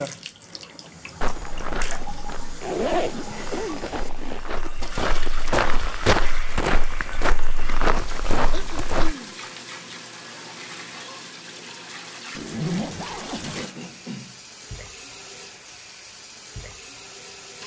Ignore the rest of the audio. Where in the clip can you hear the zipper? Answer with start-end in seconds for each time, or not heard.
2.6-4.4, 12.3-13.7.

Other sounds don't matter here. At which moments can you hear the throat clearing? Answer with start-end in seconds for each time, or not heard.
3.1-3.9, 8.5-9.4, 13.6-14.4.